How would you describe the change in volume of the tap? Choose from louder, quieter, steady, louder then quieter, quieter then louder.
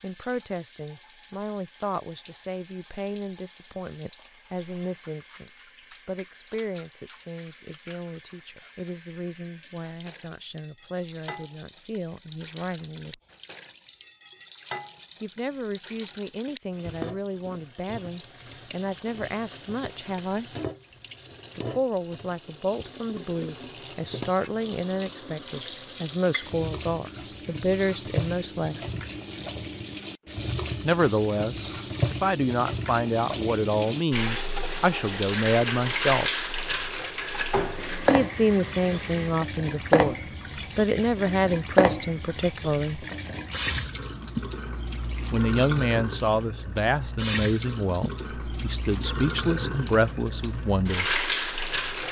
louder.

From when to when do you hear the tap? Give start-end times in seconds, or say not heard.
0.0-52.0.